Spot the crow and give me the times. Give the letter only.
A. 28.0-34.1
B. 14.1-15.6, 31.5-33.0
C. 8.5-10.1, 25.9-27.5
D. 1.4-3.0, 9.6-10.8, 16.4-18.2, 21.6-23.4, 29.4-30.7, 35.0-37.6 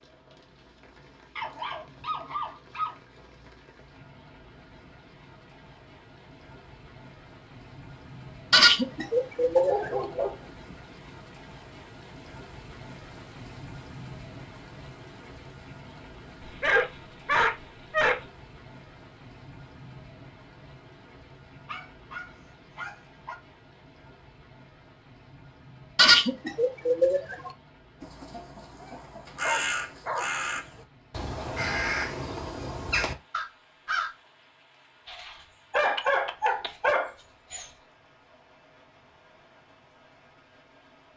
A.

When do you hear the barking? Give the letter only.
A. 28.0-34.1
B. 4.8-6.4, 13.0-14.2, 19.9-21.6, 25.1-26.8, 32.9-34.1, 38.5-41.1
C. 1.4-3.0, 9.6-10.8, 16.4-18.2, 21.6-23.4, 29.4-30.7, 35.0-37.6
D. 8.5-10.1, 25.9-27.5
C.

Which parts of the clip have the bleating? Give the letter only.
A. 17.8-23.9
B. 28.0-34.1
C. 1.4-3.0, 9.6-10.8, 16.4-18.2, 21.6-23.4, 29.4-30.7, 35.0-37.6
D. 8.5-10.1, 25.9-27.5
D.